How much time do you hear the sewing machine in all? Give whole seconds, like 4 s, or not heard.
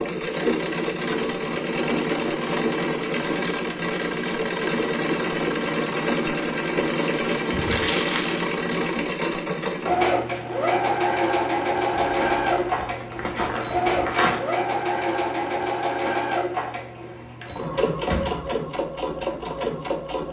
20 s.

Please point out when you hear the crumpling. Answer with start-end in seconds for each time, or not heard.
7.5-8.4, 11.9-14.4.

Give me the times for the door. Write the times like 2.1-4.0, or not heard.
17.4-18.5.